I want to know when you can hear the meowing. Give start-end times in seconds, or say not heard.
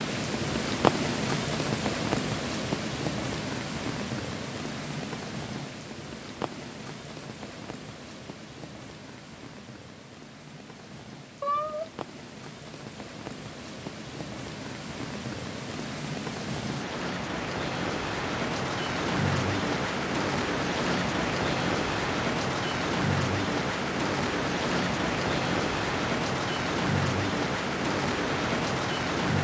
11.4-11.9.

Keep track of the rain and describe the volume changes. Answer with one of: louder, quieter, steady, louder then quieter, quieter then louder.
quieter then louder.